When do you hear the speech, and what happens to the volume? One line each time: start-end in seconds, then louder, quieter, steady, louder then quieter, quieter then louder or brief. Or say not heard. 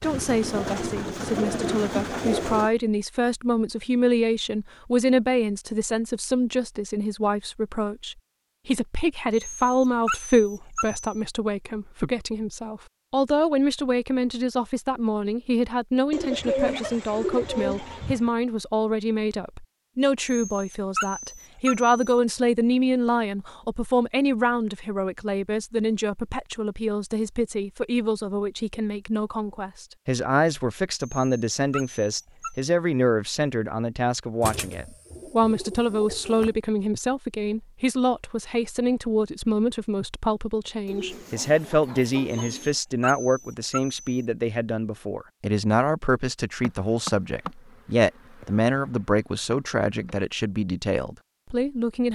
0.0-52.1 steady.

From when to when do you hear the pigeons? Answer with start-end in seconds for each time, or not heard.
0.0-2.7, 16.1-18.3, 34.4-36.5, 40.9-42.8.